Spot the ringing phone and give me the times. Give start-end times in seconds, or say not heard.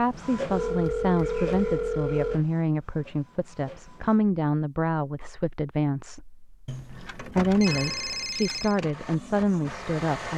0.5-2.5, 6.7-8.8.